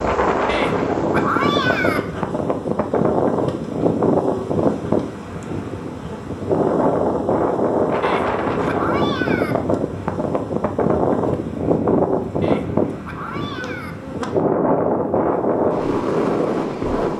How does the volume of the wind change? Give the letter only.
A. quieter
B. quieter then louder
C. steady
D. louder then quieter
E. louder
C.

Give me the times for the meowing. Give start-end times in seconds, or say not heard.
0.5-2.0, 8.0-9.6, 12.4-13.9.